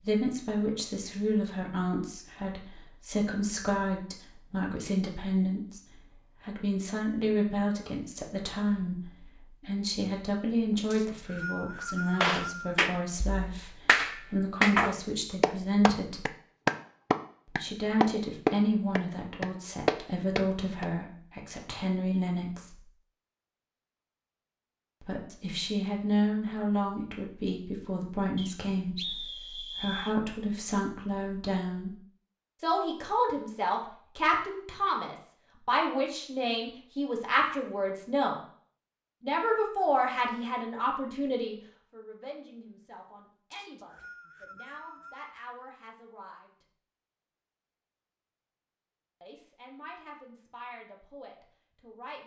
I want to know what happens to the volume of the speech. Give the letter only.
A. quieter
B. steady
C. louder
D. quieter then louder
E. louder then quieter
A.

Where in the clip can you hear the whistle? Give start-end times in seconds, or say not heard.
10.9-12.8, 28.4-30.1, 43.5-45.4.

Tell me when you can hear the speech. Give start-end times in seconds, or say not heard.
0.0-16.2, 17.4-22.9, 25.0-31.9, 32.6-38.4, 39.2-46.6, 49.2-52.2.